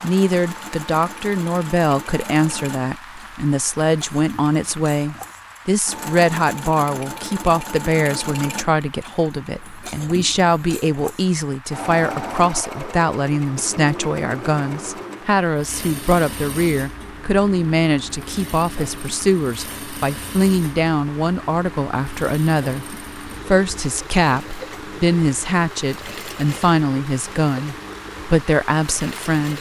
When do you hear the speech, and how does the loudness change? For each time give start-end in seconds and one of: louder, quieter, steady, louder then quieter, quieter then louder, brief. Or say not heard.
0.0-29.5 steady.